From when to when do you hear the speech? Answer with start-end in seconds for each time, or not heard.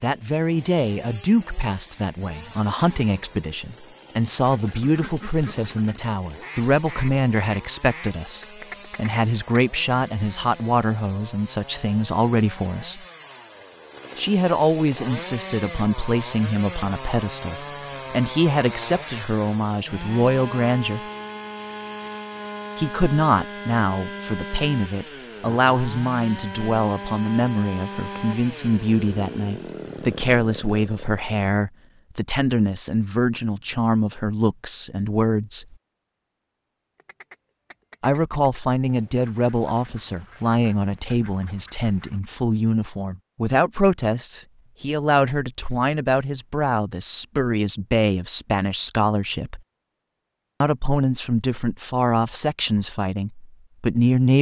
0.0-13.1, 14.2-21.0, 22.8-35.8, 38.0-49.6, 50.6-54.3.